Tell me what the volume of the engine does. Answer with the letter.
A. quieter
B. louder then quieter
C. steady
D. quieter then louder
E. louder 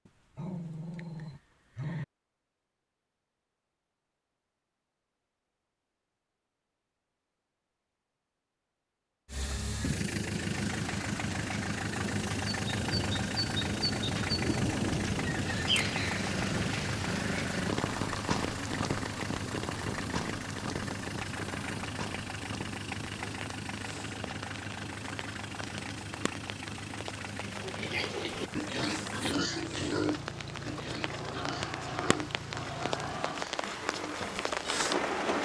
A.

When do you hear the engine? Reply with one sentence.
The engine can be heard from 9.2 to 35.2 s.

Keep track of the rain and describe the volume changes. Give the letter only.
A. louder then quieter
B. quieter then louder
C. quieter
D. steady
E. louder
B.